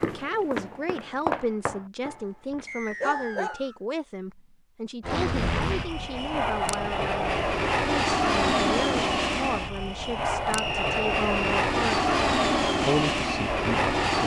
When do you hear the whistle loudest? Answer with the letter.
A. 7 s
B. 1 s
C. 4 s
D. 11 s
D.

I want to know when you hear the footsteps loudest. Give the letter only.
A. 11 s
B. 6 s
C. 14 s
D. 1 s
D.